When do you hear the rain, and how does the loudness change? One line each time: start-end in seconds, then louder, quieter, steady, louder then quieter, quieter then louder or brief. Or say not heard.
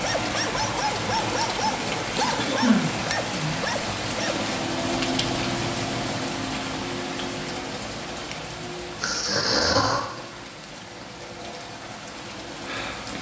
0.0-13.1 quieter.